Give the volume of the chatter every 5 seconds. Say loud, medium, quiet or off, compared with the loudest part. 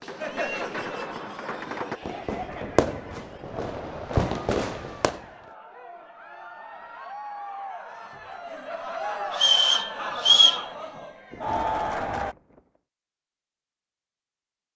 medium, medium, loud.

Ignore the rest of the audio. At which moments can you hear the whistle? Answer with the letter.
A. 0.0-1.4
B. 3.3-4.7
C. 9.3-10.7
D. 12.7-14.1
C.